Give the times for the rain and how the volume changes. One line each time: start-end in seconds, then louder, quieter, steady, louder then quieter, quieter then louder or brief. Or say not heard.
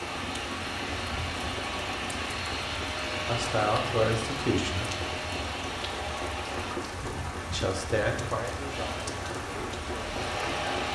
0.0-10.9 steady.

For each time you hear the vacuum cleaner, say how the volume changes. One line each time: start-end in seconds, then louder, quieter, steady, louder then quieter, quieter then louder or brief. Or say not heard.
0.0-6.8 steady
8.7-10.9 brief.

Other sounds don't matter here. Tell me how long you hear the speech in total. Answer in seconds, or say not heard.
5 s.